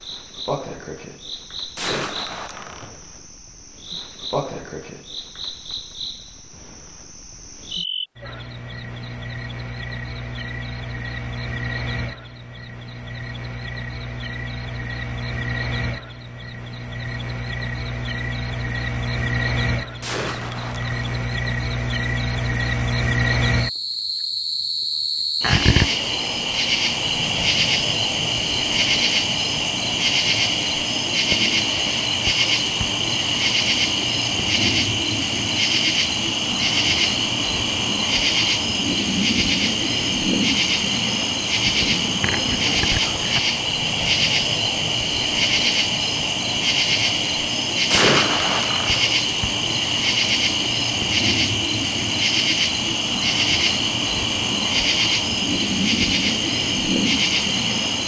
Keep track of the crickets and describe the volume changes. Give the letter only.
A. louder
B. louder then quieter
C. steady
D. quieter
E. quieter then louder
A.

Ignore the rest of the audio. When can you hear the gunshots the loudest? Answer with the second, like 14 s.
48 s.